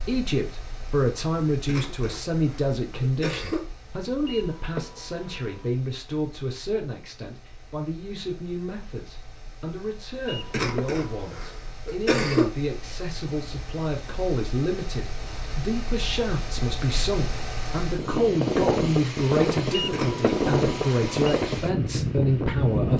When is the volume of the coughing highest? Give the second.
12 s.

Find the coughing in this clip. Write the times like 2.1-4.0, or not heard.
1.6-3.6, 10.5-12.5, 19.9-20.3.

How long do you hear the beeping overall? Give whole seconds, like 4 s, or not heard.
4 s.